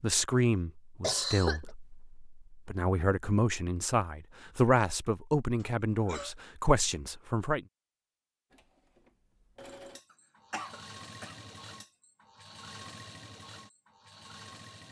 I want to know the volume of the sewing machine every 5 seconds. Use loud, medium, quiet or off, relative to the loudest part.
off, loud, loud.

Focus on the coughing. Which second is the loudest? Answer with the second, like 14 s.
1 s.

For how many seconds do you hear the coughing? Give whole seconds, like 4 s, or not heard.
2 s.